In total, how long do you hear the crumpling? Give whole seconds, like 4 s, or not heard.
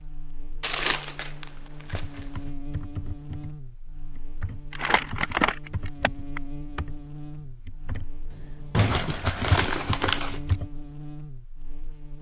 5 s.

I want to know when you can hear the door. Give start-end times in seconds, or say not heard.
8.3-9.2.